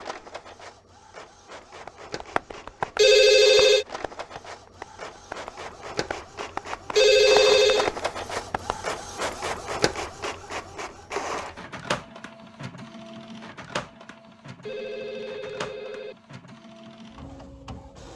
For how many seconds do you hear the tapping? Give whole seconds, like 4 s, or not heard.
7 s.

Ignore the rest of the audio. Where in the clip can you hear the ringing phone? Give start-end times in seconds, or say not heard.
3.0-3.9, 7.0-7.9, 14.6-16.1.